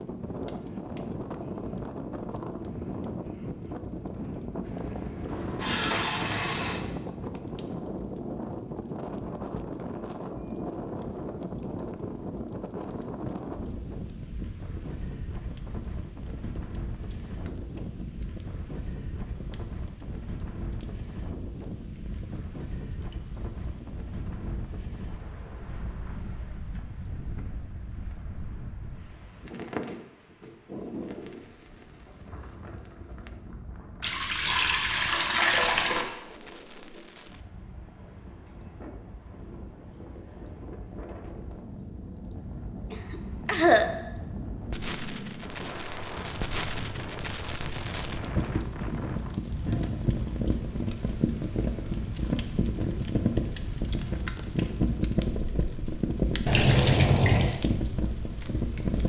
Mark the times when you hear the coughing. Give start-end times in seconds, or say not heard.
4.7-6.1, 42.9-43.9.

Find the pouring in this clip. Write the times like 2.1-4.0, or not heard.
5.2-6.8, 34.0-36.0, 56.5-57.5.